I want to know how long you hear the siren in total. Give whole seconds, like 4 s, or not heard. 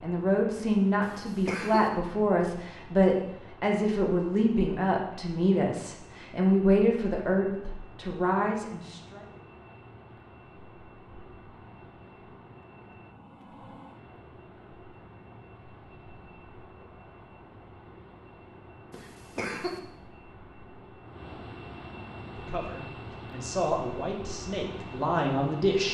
not heard.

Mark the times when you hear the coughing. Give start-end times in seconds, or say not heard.
1.0-1.9, 18.9-19.8.